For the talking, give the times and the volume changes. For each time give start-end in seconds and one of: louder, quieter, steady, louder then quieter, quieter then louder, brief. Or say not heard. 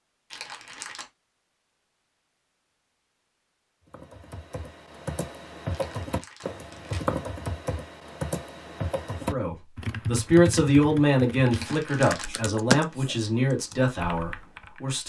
9.2-15.0 quieter.